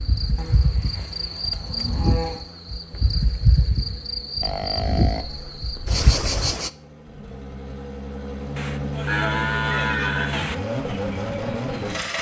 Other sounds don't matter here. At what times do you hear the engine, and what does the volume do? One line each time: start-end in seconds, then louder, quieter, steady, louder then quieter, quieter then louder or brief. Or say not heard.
0.0-12.1 louder.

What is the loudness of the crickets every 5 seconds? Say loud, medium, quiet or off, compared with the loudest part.
loud, loud, off.